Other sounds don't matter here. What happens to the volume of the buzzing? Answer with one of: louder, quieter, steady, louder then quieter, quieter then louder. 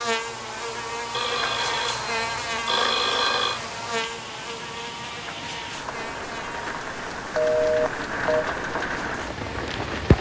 quieter.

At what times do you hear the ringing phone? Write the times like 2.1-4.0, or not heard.
1.1-3.6, 7.3-8.4.